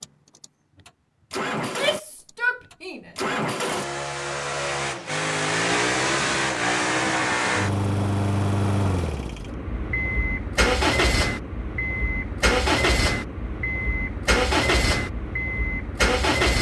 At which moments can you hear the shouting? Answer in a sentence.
You can hear the shouting from 1.6 to 3.1 s.